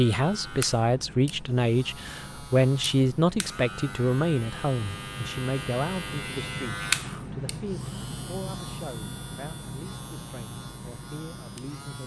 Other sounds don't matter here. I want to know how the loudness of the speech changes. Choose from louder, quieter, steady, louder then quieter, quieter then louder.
quieter.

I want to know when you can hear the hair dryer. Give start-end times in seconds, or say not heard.
not heard.